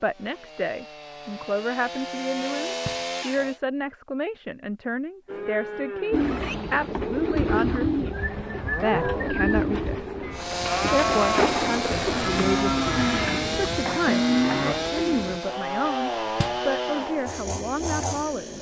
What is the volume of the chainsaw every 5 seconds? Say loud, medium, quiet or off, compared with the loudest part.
medium, off, loud, loud.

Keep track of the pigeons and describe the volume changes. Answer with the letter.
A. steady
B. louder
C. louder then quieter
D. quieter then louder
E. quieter
E.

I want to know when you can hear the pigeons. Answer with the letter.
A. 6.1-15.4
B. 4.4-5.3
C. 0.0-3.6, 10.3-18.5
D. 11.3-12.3
A.